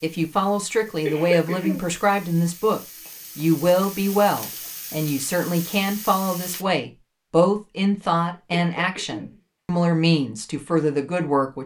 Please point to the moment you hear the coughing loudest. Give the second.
1 s.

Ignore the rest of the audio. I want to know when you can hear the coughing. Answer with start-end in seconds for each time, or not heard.
0.8-1.9, 8.6-9.4.